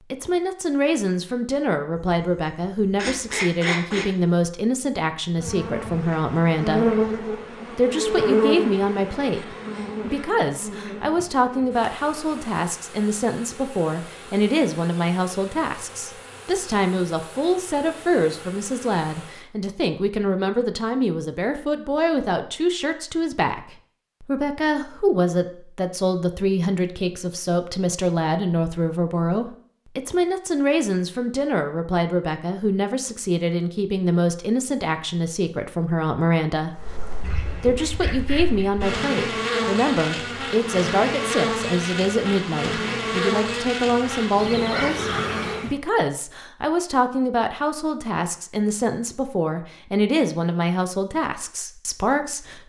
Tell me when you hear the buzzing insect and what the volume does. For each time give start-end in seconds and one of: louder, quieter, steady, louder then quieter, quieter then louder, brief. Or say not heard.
5.3-19.5 quieter
36.7-45.8 louder.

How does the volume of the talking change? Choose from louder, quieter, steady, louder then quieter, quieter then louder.
steady.